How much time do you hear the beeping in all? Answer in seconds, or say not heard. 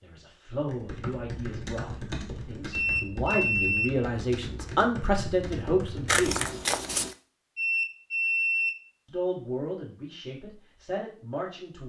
2 s.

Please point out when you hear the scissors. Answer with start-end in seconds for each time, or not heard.
6.0-7.2.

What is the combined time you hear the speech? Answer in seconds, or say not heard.
9 s.